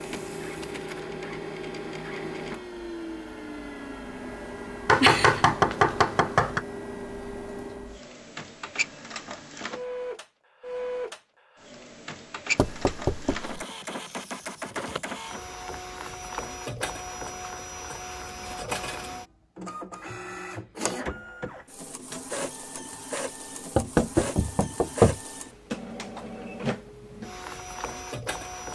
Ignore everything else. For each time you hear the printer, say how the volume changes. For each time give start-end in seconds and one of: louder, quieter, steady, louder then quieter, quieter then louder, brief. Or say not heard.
0.0-28.7 steady.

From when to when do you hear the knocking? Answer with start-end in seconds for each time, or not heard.
4.8-6.7, 12.6-13.6, 23.8-25.2.